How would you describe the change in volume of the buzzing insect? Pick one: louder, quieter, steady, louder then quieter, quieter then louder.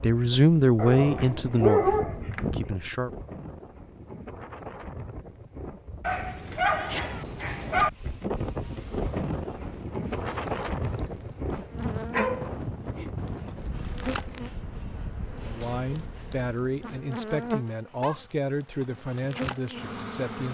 louder.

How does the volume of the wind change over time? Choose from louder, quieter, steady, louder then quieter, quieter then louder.
louder then quieter.